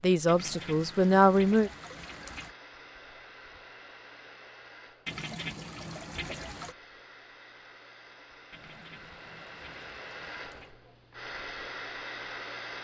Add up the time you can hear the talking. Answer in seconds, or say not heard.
2 s.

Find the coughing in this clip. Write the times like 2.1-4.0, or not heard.
not heard.